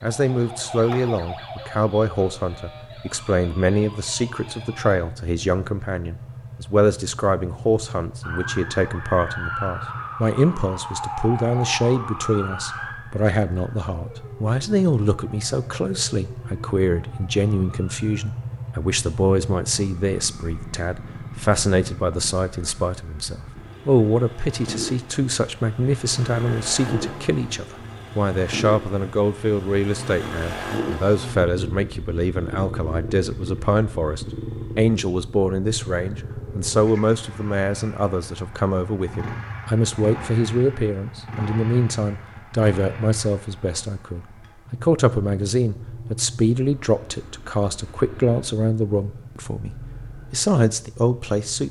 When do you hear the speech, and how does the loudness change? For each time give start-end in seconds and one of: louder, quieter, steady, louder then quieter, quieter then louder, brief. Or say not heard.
0.0-51.6 steady.